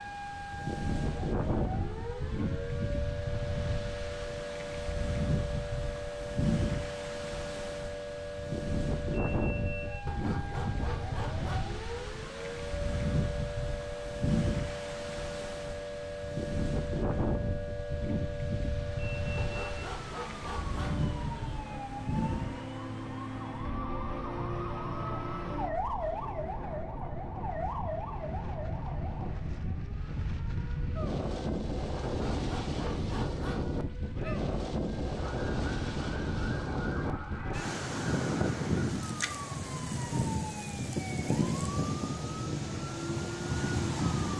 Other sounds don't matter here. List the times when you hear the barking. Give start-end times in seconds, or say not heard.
10.1-11.7, 19.4-21.1, 32.0-33.8.